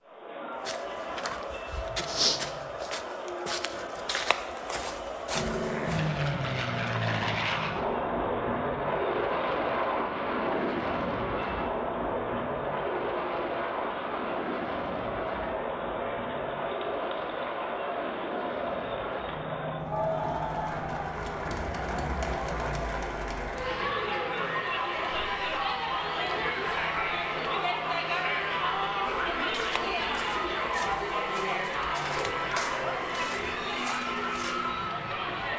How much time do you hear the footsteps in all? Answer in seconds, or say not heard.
11 s.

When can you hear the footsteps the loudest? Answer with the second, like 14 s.
2 s.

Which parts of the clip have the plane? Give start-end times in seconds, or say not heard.
5.3-35.5.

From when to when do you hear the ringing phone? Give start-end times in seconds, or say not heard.
not heard.